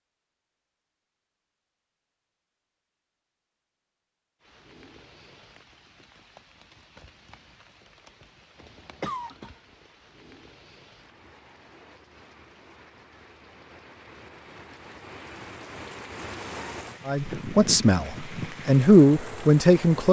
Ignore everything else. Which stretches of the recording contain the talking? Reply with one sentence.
The talking can be heard from 17.1 to 20.0 s.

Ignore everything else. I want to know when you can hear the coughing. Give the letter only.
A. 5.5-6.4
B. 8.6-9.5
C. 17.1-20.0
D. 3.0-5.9
B.